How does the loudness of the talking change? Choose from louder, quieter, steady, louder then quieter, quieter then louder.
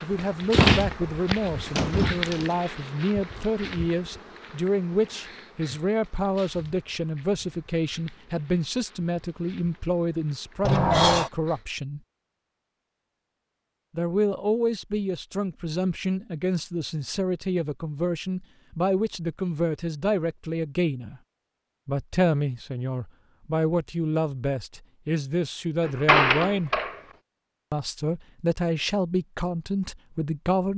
steady.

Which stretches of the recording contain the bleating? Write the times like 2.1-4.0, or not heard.
not heard.